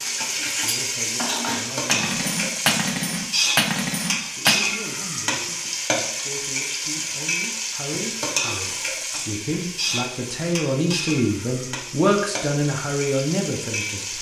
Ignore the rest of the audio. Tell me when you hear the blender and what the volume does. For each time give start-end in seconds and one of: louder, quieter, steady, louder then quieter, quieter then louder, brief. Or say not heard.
not heard.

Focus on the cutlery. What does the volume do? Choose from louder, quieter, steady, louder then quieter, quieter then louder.
louder.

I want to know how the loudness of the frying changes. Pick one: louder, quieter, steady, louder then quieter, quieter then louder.
quieter.